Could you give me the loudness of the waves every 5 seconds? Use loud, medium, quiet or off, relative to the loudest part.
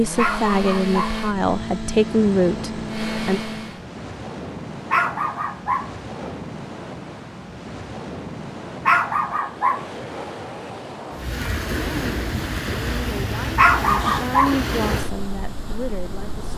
medium, medium, loud, medium.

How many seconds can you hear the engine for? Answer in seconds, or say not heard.
4 s.